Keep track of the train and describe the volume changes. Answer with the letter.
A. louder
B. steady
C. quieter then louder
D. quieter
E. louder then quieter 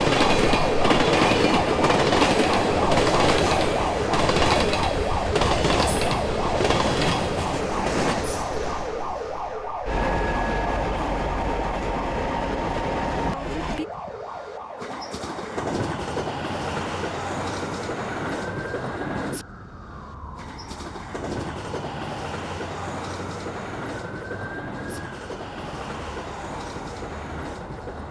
D.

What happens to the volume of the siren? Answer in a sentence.
The volume of the siren goes down.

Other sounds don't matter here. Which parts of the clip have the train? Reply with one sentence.
The train can be heard from 0.0 to 28.0 s.